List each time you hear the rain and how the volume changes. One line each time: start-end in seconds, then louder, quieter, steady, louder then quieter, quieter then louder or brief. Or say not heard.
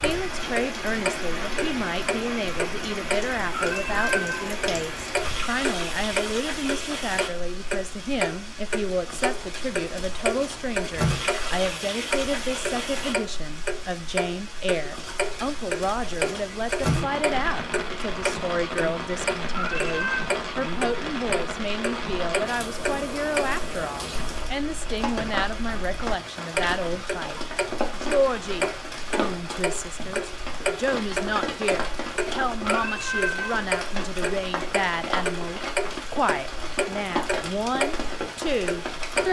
0.0-39.2 steady.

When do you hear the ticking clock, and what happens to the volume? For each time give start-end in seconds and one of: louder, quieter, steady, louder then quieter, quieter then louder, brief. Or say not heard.
0.0-39.2 steady.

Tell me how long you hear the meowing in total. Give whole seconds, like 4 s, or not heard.
3 s.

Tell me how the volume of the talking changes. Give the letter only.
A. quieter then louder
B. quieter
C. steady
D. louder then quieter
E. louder
C.